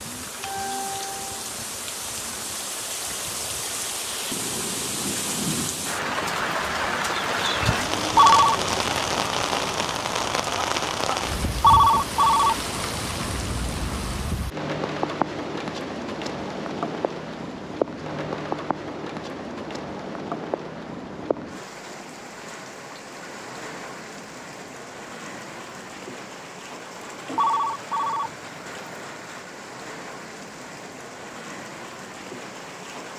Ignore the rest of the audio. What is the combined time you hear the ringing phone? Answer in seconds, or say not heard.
2 s.